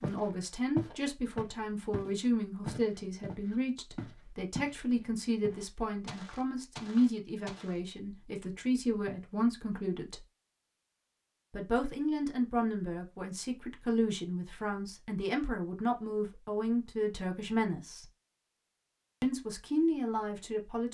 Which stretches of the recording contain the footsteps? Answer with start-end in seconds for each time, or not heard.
0.0-4.8, 5.4-7.8.